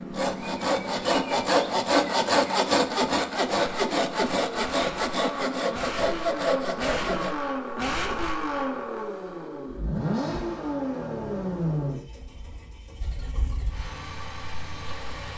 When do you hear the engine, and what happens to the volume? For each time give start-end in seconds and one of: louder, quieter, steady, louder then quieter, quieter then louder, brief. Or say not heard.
0.0-15.3 louder then quieter.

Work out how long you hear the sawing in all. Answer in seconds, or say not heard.
7 s.